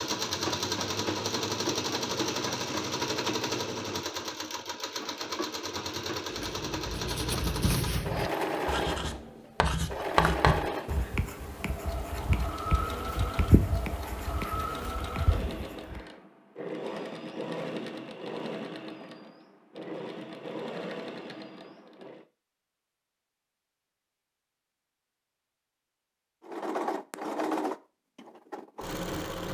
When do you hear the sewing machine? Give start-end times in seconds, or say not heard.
0.0-22.2, 26.4-29.5.